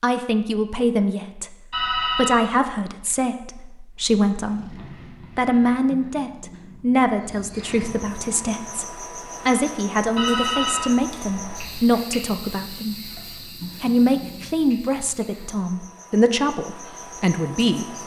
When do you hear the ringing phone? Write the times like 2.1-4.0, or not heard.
1.7-2.5, 10.2-11.8.